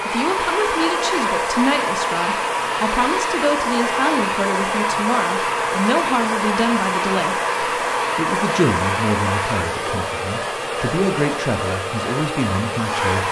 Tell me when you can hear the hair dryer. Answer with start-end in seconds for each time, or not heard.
0.0-13.2.